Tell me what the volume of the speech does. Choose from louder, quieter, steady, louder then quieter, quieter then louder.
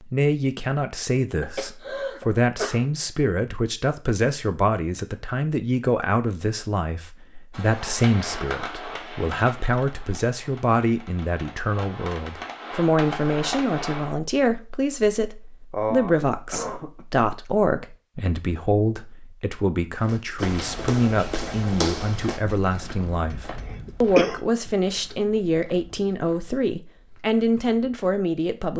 steady.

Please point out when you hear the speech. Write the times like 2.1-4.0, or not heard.
0.0-28.7.